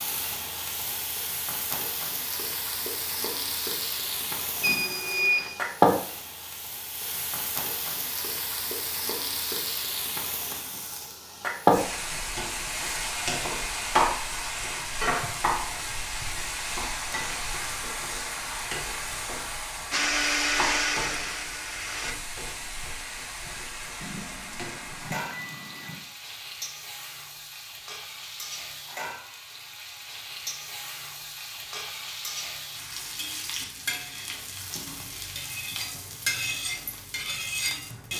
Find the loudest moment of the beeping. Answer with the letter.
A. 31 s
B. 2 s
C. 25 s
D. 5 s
D.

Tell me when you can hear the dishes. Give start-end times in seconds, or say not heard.
not heard.